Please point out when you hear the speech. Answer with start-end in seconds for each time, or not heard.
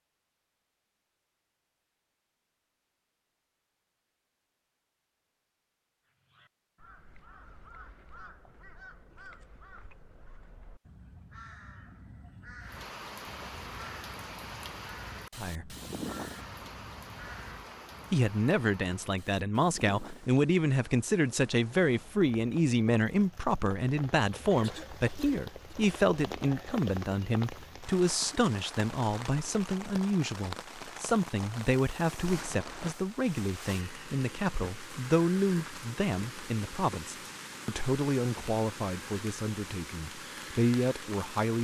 15.3-15.8, 18.1-41.5.